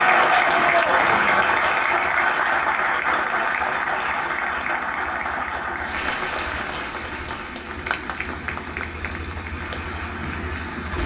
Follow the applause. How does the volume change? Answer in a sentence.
The loudness of the applause goes down.